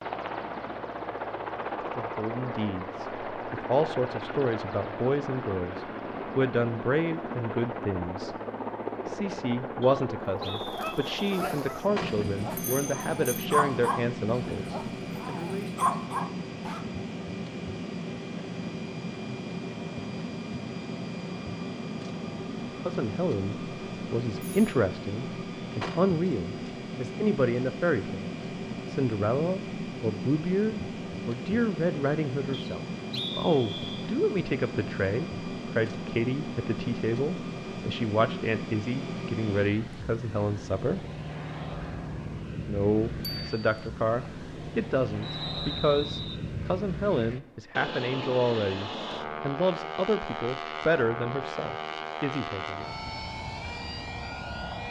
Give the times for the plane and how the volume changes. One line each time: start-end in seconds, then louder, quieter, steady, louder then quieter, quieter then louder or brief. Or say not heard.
0.0-54.8 steady.